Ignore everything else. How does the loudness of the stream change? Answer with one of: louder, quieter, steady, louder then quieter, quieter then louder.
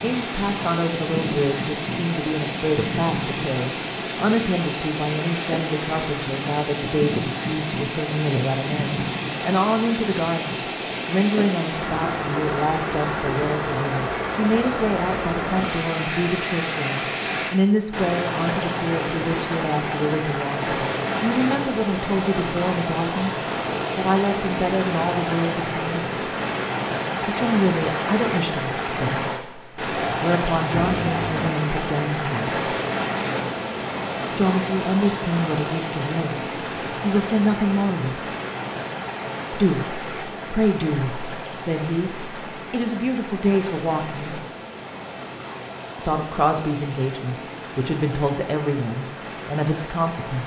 quieter.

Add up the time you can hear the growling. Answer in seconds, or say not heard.
2 s.